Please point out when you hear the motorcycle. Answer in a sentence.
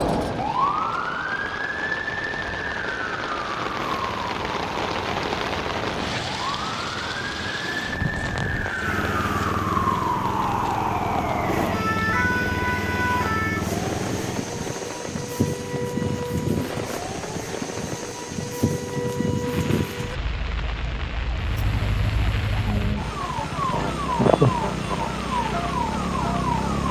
You can hear the motorcycle from 3.6 to 14.6 s and from 21.4 to 26.8 s.